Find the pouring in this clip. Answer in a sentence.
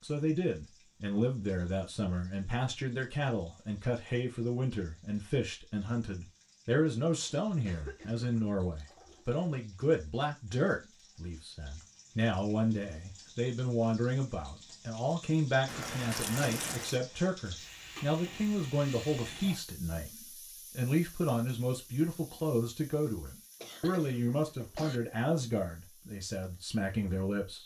The pouring can be heard from 8.0 to 9.2 s and from 15.7 to 17.0 s.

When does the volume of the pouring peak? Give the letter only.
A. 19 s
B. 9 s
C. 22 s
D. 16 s
D.